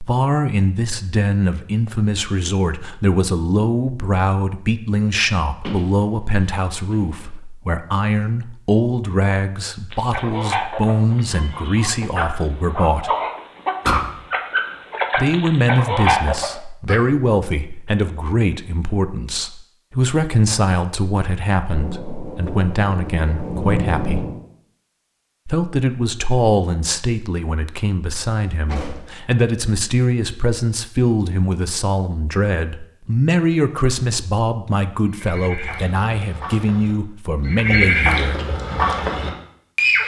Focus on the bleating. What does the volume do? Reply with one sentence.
The loudness of the bleating goes up.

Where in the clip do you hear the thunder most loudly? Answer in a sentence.
The volume of the thunder peaks at 24 seconds.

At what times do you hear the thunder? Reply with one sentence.
You can hear the thunder from 21.7 to 24.4 s.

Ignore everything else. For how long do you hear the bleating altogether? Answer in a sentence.
You can hear the bleating for 5 seconds altogether.